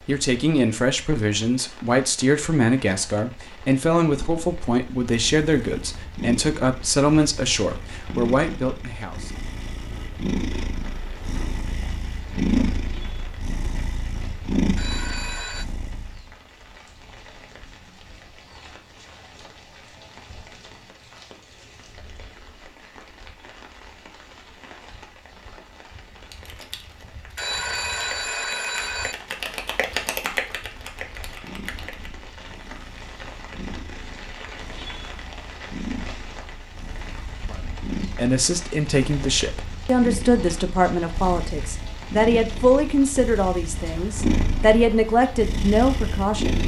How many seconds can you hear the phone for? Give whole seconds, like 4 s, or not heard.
3 s.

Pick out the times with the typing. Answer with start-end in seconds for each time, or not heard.
26.3-32.1.